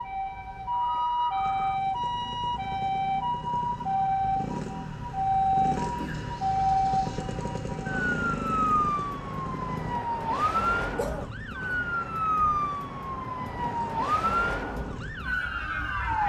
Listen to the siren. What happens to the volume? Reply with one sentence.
The volume of the siren stays about the same.